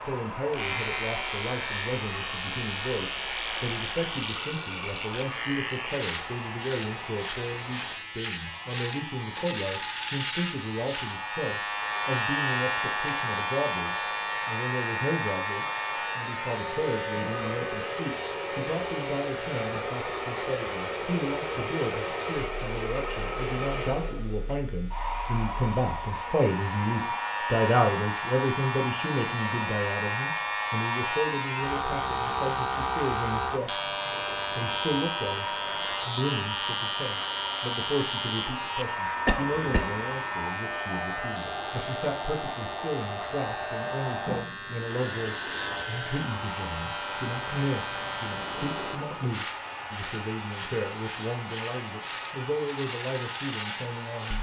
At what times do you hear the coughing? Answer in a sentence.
The coughing can be heard from 39.2 to 40.0 s.